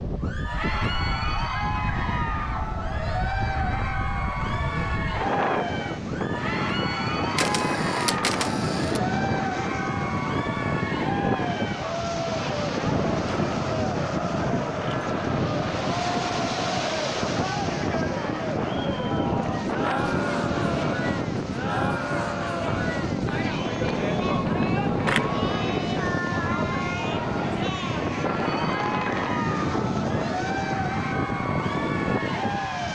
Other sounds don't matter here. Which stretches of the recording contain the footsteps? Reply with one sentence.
You can't hear the footsteps here.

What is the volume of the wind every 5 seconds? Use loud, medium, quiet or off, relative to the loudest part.
medium, loud, loud, loud, loud, loud, loud.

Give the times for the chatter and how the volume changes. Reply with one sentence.
You can hear the chatter from 0.1 to 32.8 s, at a steady volume.